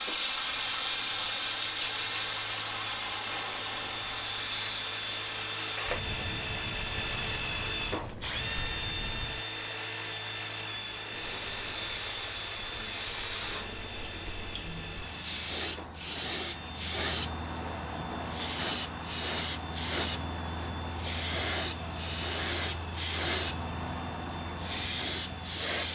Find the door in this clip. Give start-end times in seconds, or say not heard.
not heard.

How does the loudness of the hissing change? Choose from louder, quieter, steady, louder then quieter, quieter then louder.
quieter then louder.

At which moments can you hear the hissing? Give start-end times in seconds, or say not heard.
0.0-25.9.